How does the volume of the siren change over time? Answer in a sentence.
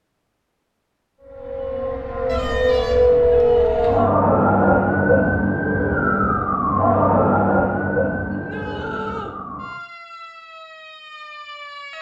The loudness of the siren goes down.